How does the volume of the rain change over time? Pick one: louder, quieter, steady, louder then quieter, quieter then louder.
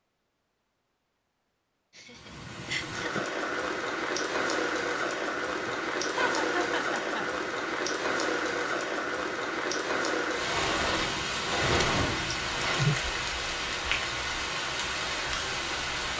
steady.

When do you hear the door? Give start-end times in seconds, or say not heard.
10.4-12.8.